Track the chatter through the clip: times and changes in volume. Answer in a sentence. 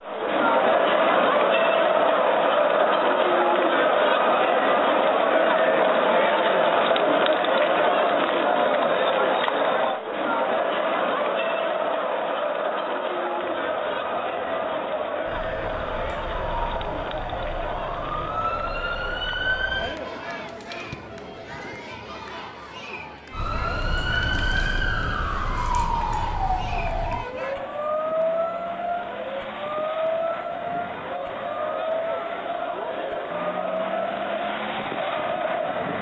The chatter can be heard from 0.0 to 35.9 s, getting quieter then louder.